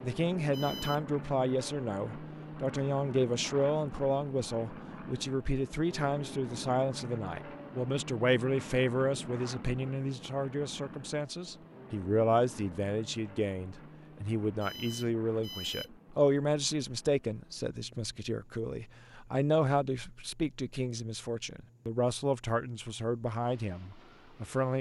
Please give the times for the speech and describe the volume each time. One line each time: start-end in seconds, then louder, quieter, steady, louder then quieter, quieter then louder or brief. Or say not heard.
0.0-24.7 steady.